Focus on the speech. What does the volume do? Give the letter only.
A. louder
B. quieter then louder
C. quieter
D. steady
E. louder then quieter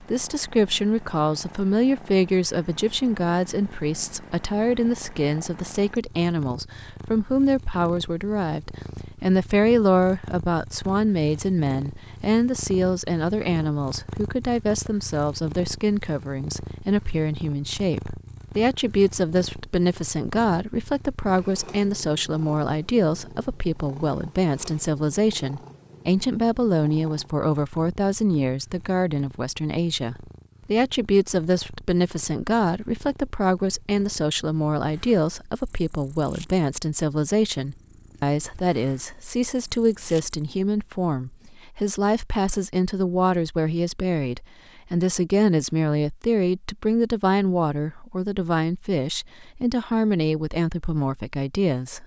D.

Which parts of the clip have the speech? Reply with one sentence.
You can hear the speech from 0.0 to 52.0 s.